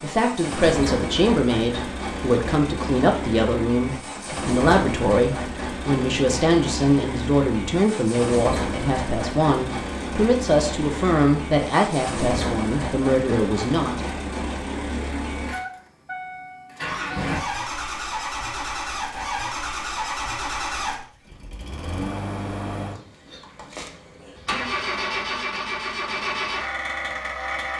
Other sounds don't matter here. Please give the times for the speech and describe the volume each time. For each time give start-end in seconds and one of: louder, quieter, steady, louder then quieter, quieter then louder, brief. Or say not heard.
0.0-14.0 steady.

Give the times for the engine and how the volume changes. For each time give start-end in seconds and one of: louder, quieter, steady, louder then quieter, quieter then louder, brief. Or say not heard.
0.0-27.7 steady.